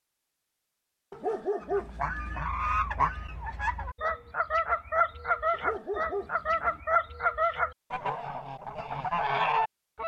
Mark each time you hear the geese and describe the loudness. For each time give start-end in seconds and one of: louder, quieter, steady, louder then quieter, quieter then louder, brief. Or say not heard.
1.6-10.0 steady.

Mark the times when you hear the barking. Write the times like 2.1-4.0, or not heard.
1.1-2.4, 5.5-6.8.